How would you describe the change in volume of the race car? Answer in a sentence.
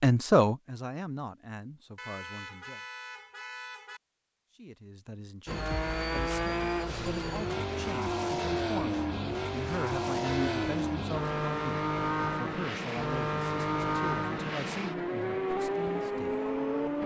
The volume of the race car stays about the same.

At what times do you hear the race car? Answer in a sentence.
You can hear the race car from 5.5 to 17.0 s.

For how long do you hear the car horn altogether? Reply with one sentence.
You can hear the car horn for 3 seconds altogether.